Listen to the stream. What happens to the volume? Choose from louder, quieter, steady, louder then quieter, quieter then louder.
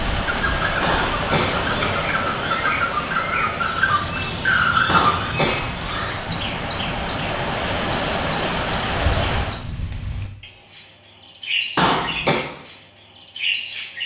quieter then louder.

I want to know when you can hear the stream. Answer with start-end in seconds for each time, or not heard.
0.0-9.7.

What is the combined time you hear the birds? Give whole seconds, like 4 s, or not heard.
14 s.